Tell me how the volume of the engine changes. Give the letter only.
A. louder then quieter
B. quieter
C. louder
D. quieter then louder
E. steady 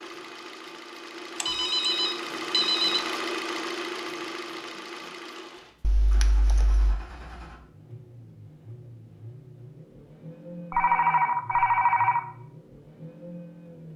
B.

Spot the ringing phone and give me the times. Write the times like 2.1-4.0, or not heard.
1.4-3.0, 5.8-7.0, 10.7-12.2.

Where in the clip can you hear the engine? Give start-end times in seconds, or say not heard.
0.0-13.9.